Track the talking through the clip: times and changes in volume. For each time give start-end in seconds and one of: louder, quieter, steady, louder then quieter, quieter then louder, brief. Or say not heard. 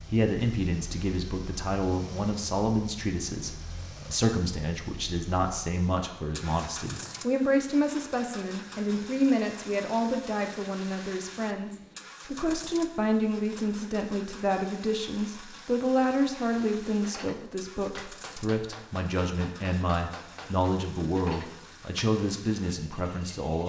0.1-23.6 steady.